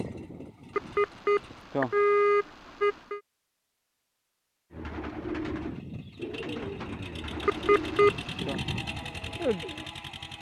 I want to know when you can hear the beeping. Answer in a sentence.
The beeping can be heard from 0.8 to 3.2 s and from 7.5 to 8.6 s.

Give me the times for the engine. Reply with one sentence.
You can hear the engine from 0.0 to 1.6 s and from 5.5 to 10.3 s.